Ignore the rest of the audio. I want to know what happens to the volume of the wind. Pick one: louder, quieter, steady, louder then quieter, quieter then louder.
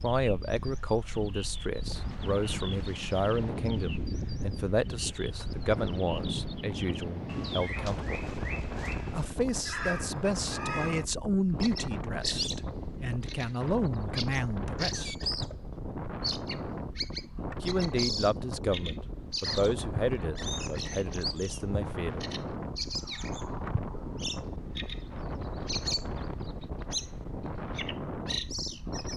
steady.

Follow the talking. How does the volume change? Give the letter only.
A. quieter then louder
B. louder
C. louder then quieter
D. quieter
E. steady
E.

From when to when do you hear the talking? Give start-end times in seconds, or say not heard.
0.0-8.2, 9.1-15.2, 17.6-22.2.